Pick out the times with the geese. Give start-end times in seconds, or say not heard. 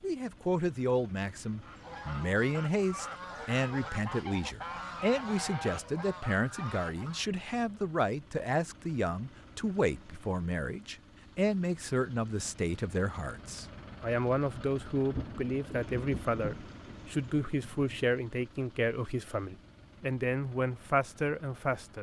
1.6-7.3.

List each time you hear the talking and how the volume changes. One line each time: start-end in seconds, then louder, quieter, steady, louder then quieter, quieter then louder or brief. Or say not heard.
0.0-21.9 steady.